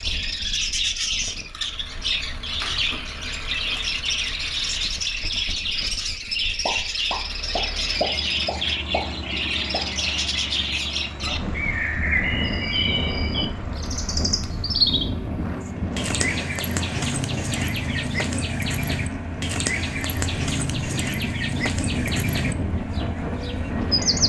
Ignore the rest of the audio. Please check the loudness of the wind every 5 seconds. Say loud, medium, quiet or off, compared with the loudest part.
off, off, loud, loud, loud.